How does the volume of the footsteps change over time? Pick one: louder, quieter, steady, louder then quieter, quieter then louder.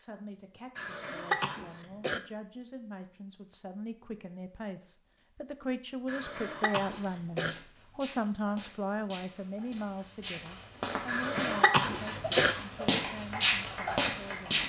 louder.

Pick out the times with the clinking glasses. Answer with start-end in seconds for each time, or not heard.
not heard.